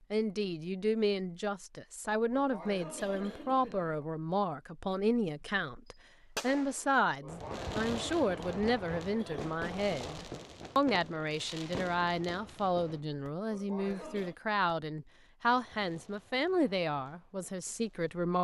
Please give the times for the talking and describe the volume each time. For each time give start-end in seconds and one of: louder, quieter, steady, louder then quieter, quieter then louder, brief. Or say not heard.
0.1-18.3 steady.